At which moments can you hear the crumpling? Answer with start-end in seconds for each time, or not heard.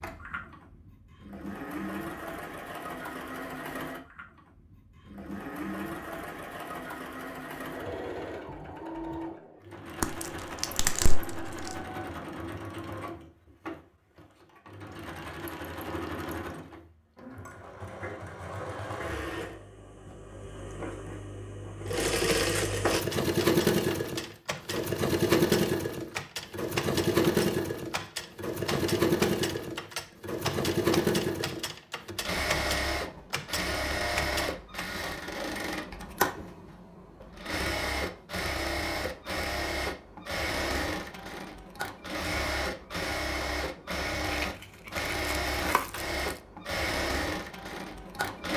10.0-11.8, 44.3-46.4.